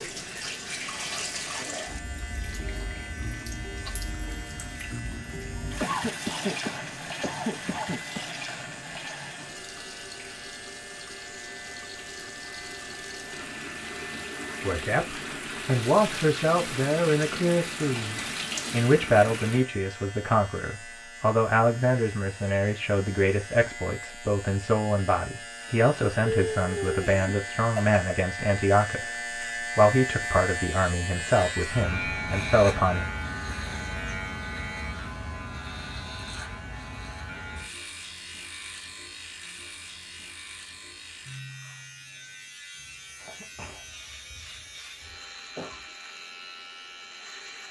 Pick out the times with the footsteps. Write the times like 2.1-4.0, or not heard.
not heard.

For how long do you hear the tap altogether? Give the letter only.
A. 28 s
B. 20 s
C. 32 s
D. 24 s
B.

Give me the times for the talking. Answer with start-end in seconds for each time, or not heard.
14.6-33.0.